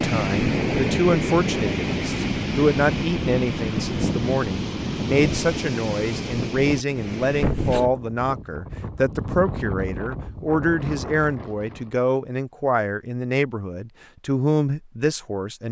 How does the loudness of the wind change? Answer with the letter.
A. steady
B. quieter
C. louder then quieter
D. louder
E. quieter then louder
B.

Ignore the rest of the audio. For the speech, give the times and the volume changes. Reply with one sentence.
The speech can be heard from 0.0 to 15.6 s, at a steady volume.